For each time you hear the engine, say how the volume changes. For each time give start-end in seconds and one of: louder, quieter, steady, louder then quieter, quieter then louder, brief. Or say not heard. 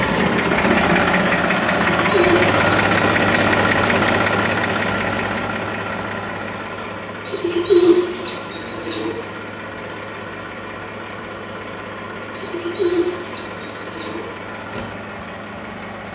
0.0-16.0 quieter.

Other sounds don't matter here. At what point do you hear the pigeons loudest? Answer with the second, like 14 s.
8 s.